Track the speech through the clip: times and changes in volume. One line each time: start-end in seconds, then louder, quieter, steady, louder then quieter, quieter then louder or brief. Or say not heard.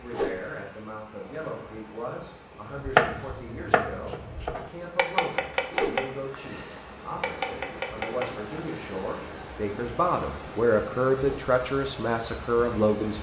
0.0-13.1 louder.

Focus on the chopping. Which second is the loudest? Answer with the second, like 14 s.
3 s.